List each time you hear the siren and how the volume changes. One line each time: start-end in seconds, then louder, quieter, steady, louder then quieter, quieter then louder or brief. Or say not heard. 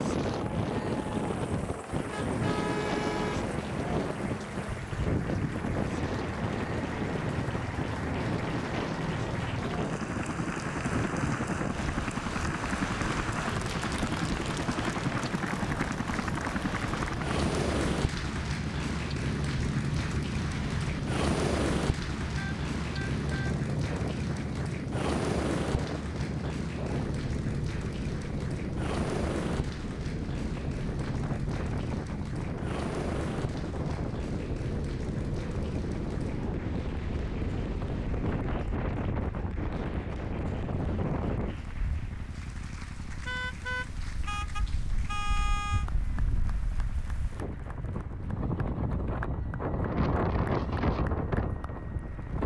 not heard.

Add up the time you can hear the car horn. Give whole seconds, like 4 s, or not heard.
5 s.